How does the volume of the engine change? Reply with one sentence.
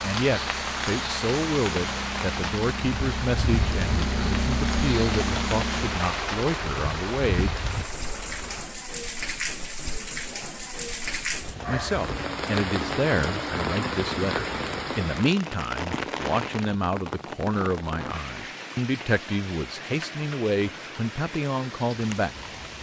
The loudness of the engine goes up, then down.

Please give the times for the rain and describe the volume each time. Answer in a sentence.
The rain can be heard from 0.0 to 22.7 s, getting quieter.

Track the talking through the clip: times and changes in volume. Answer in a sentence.
The talking can be heard from 0.0 to 7.6 s, at a steady volume; and from 11.7 to 22.4 s, at a steady volume.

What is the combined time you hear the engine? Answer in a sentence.
The engine can be heard for 9 seconds in total.